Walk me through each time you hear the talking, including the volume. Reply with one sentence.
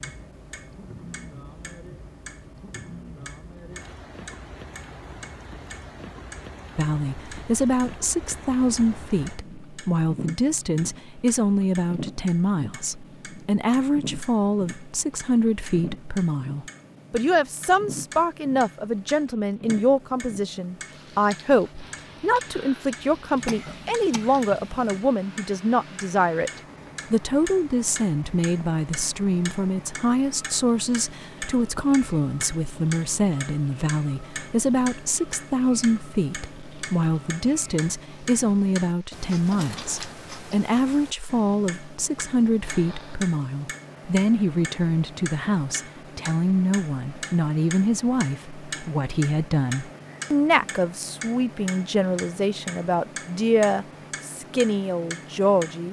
You can hear the talking from 6.8 to 26.5 s, at a steady volume; and from 27.1 to 55.8 s, at a steady volume.